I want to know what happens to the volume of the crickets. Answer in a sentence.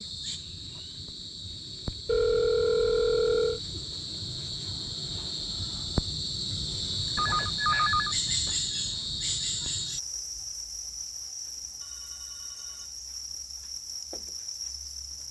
The loudness of the crickets goes up, then down.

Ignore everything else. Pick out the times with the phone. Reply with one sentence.
You can hear the phone from 2.0 to 3.6 s, from 7.2 to 8.6 s and from 11.8 to 13.0 s.